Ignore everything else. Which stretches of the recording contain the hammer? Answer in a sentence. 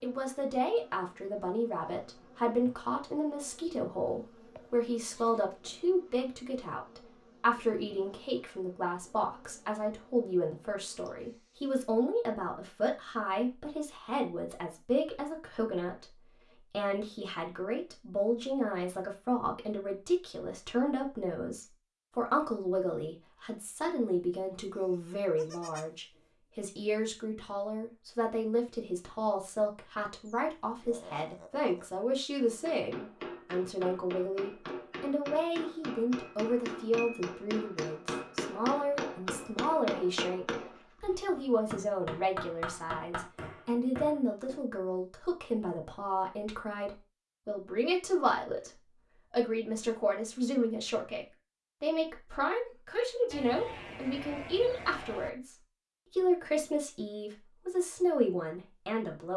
The hammer can be heard from 32.4 to 44.6 s.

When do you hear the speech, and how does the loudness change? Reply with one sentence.
The speech can be heard from 0.0 to 59.3 s, at a steady volume.